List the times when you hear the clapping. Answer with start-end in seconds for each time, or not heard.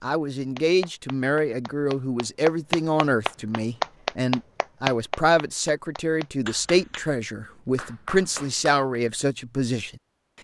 0.6-8.8.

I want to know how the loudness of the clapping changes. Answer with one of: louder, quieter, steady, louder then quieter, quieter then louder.
louder then quieter.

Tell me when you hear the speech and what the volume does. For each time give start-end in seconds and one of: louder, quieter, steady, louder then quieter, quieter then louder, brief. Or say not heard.
0.0-10.0 steady.